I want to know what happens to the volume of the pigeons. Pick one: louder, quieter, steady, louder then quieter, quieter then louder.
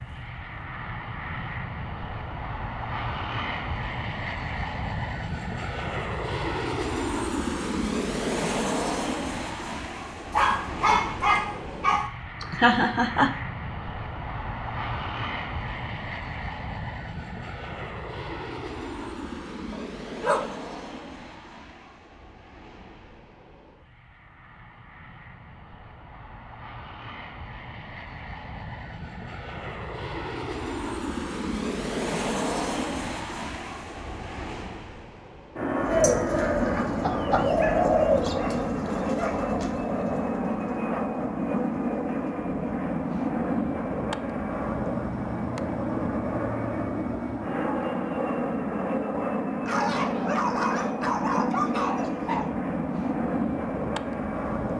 louder then quieter.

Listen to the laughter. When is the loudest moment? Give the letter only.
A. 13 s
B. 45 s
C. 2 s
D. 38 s
A.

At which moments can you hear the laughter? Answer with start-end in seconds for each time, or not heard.
12.4-13.3, 36.5-37.5.